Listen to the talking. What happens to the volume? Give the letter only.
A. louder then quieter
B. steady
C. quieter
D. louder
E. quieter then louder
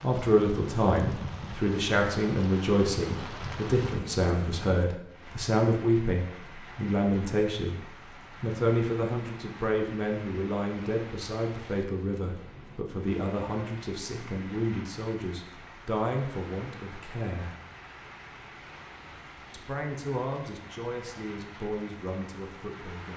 C.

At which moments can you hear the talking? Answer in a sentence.
You can hear the talking from 0.0 to 7.8 s, from 8.4 to 17.6 s and from 19.5 to 23.1 s.